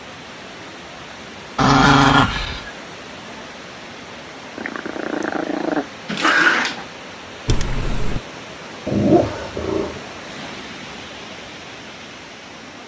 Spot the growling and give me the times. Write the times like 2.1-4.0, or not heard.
1.6-2.7, 4.5-6.8, 8.8-10.0.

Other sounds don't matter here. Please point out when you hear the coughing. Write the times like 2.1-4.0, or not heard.
7.5-8.2.